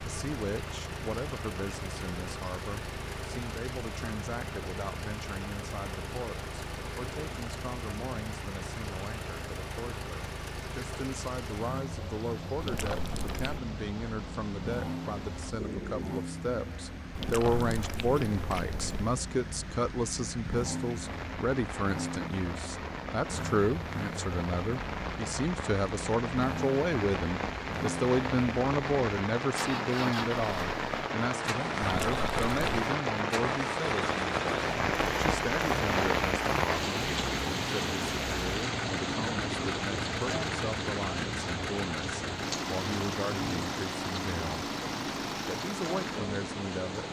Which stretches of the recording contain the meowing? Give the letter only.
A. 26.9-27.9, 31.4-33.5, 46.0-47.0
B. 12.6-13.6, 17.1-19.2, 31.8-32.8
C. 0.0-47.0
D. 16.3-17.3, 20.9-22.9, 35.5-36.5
B.